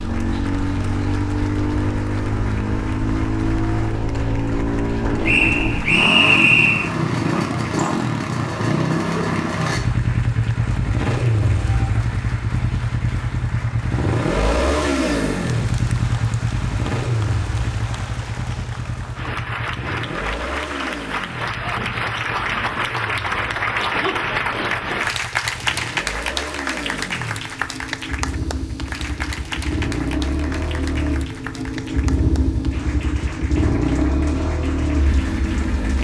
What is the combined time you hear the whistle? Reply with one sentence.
The whistle can be heard for 2 seconds in total.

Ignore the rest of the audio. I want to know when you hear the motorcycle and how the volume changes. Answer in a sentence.
You can hear the motorcycle from 0.0 to 35.9 s, getting quieter then louder.